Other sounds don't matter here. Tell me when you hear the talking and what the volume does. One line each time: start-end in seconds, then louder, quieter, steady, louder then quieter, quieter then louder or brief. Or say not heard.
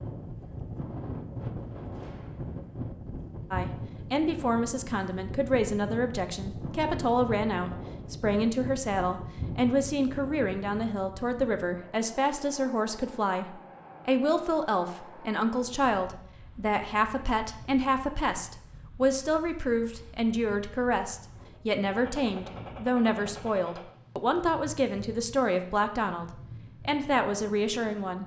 3.5-28.2 steady.